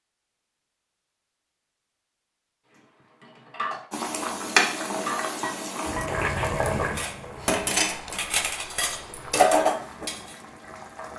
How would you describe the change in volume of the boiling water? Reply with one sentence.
The volume of the boiling water goes down.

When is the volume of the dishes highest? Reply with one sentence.
The loudest moment of the dishes is at 10 seconds.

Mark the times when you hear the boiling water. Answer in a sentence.
The boiling water can be heard from 3.9 to 11.1 s.